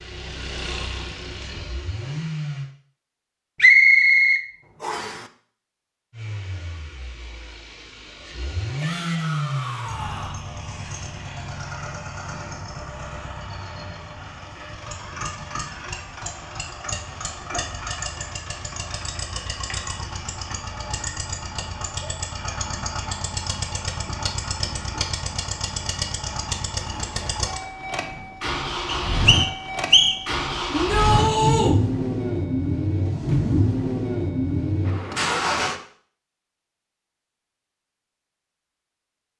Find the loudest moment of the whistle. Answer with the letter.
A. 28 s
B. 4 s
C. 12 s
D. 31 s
B.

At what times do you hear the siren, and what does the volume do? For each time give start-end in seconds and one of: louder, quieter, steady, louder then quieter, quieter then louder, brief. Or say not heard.
not heard.